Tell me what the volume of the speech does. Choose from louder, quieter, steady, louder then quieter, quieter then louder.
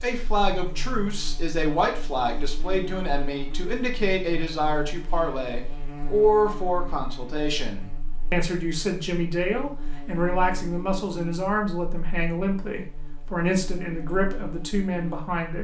steady.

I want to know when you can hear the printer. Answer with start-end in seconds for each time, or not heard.
not heard.